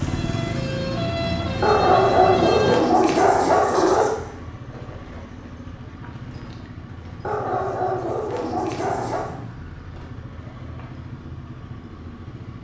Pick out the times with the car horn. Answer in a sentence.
The car horn can't be heard in this clip.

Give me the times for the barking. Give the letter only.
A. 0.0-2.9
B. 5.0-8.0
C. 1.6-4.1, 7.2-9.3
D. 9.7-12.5
C.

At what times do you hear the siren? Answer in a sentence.
You can hear the siren from 0.0 to 2.9 s.